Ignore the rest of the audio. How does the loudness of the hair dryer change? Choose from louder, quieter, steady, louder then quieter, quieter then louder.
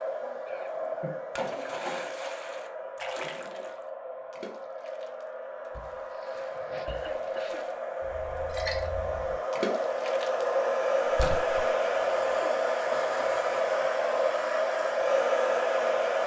louder.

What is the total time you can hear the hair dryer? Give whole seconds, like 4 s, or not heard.
16 s.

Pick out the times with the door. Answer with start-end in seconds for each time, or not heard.
not heard.